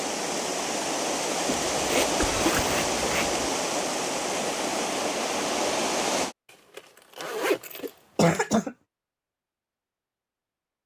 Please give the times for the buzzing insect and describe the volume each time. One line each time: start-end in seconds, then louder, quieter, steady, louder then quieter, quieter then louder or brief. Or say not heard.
not heard.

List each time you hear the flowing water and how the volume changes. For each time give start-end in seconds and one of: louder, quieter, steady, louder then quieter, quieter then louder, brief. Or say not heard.
0.0-6.3 steady.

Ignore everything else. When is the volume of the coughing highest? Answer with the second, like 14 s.
8 s.